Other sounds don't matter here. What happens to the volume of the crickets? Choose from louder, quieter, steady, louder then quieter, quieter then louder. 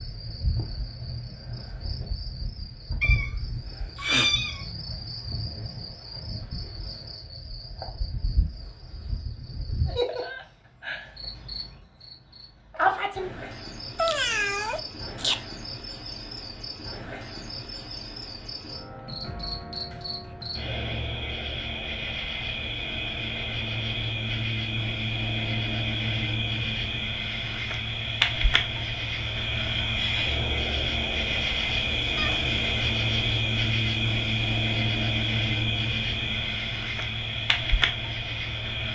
louder.